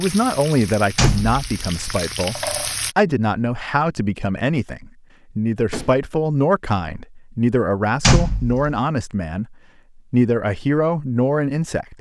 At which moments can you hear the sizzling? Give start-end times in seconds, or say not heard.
0.0-3.0.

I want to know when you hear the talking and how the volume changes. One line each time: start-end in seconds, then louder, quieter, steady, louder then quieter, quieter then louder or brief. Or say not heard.
0.0-11.9 steady.